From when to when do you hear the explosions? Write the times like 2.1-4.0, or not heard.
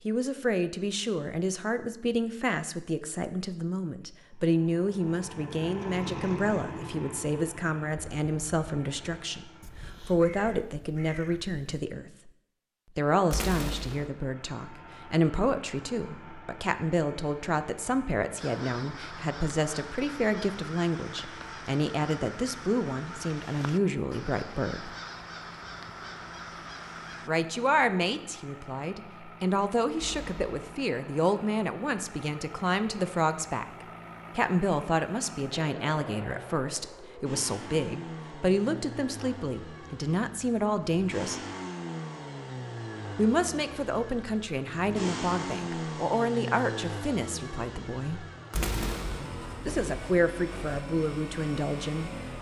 13.3-14.1, 29.9-30.7, 48.5-49.3.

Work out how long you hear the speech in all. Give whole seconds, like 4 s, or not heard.
46 s.